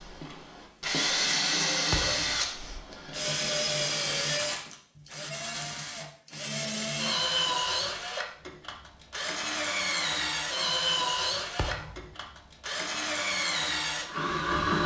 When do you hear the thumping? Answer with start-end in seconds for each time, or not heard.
1.9-2.5, 11.6-12.2.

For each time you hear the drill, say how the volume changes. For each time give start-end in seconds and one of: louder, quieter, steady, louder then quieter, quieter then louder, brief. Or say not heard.
0.0-14.8 steady.